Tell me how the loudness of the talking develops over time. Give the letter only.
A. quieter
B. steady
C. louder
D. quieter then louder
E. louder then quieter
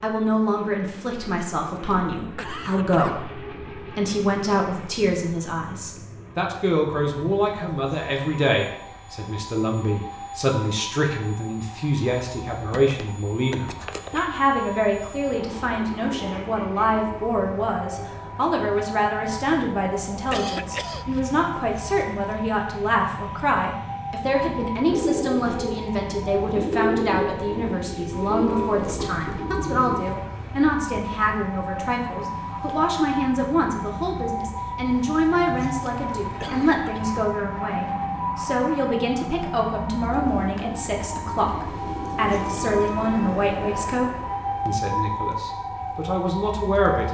B.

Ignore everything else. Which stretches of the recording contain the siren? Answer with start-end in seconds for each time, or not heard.
7.0-47.0.